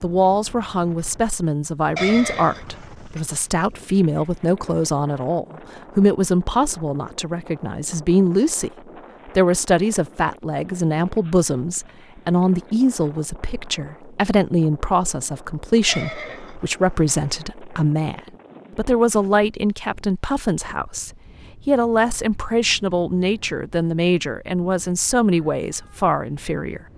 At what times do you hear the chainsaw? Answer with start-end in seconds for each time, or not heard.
not heard.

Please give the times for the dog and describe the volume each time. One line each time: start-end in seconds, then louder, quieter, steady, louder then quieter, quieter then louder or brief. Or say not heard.
not heard.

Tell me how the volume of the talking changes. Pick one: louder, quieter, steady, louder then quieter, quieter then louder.
steady.